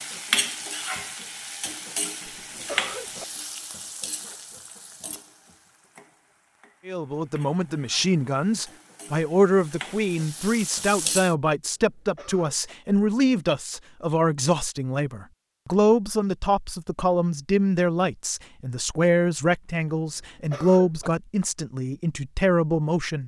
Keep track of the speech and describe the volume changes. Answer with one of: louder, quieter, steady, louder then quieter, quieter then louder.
steady.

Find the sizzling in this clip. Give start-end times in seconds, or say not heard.
0.0-11.3.